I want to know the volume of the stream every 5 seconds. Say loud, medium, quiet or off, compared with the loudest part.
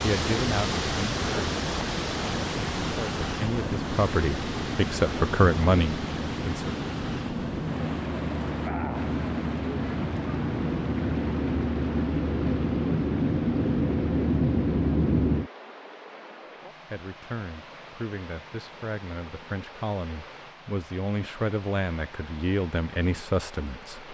loud, medium, medium, quiet, quiet.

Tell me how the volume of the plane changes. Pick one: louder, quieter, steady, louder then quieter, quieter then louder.
louder.